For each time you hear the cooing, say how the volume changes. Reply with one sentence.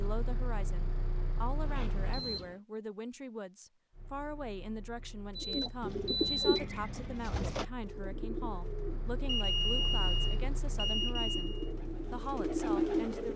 The cooing can be heard from 5.4 to 13.3 s, getting quieter then louder.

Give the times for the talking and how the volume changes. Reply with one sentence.
The talking can be heard from 0.0 to 13.3 s, at a steady volume.